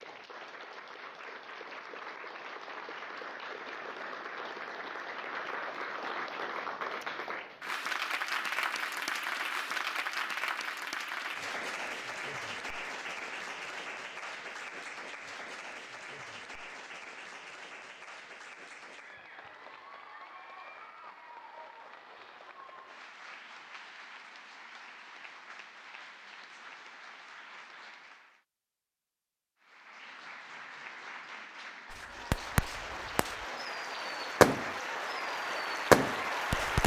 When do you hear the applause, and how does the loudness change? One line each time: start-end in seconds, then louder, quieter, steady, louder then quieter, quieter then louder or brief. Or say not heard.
0.0-28.4 louder then quieter
29.6-36.8 louder.